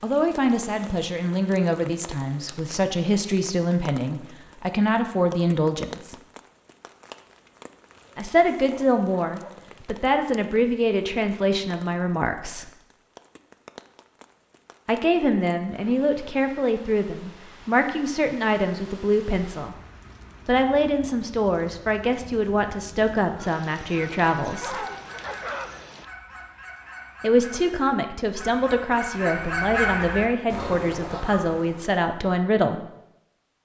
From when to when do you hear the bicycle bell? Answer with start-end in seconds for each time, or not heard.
not heard.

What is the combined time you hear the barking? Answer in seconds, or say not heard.
2 s.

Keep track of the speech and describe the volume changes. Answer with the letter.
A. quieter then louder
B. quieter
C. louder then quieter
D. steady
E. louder
D.